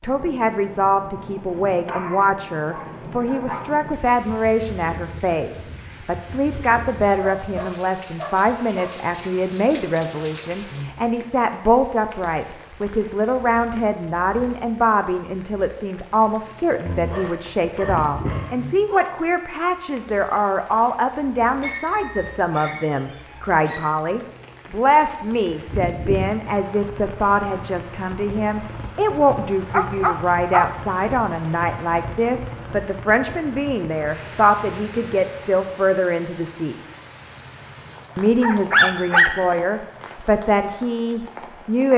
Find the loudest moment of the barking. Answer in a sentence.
The volume of the barking peaks at 39 seconds.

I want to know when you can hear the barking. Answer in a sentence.
The barking can be heard from 1.9 to 3.7 s, from 7.4 to 8.9 s, from 16.9 to 19.1 s, from 21.6 to 23.9 s, from 29.1 to 30.7 s and from 37.9 to 39.5 s.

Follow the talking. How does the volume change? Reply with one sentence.
The loudness of the talking stays about the same.